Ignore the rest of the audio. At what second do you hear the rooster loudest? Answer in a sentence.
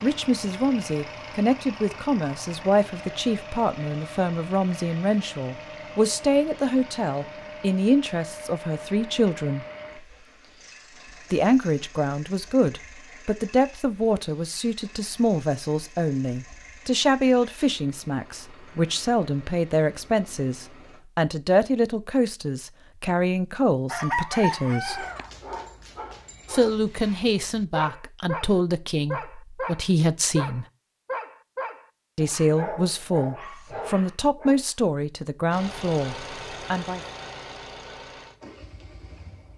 The volume of the rooster peaks at 24 seconds.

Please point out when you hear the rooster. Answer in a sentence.
You can hear the rooster from 23.9 to 25.3 s.